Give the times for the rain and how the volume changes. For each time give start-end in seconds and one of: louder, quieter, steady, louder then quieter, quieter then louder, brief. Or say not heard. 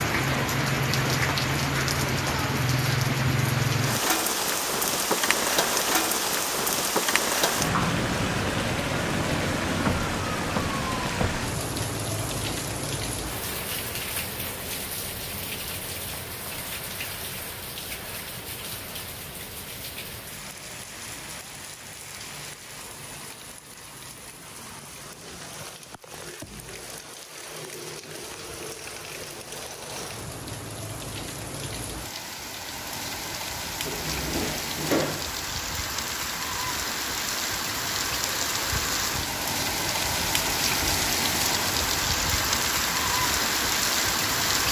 0.0-44.6 quieter then louder.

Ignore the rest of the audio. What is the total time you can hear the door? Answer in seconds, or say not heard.
3 s.